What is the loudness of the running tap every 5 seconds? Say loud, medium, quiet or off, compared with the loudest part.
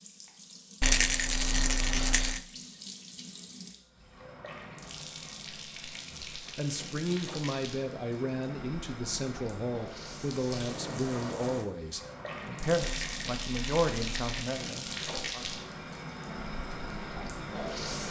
medium, medium, loud, loud.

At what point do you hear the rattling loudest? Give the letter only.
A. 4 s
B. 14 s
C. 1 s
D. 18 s
C.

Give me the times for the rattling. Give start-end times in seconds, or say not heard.
0.8-2.4, 12.8-14.4.